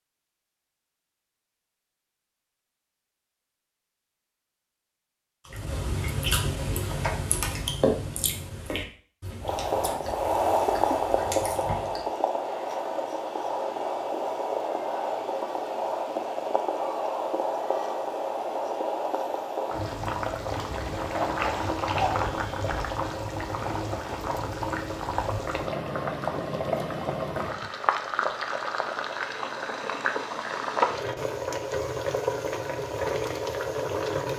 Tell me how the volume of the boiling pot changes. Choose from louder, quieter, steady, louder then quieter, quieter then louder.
steady.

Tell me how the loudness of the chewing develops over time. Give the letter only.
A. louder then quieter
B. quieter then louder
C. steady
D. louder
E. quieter
E.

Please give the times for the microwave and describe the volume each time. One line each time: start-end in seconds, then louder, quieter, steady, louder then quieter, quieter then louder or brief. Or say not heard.
not heard.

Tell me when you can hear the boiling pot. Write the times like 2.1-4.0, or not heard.
9.4-34.3.